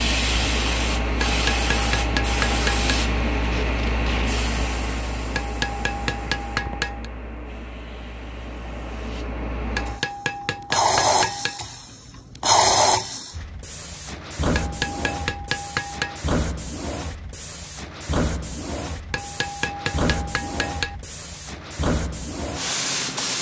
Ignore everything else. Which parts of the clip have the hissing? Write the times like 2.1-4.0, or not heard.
0.0-23.3.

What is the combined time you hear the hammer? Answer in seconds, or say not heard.
9 s.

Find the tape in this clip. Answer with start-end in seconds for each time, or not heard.
3.4-4.3.